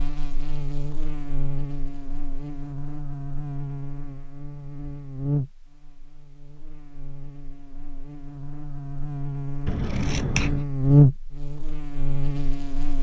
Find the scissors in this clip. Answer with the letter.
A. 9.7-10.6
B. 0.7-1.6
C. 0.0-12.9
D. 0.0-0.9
A.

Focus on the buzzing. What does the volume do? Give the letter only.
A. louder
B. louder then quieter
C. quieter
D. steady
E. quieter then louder
A.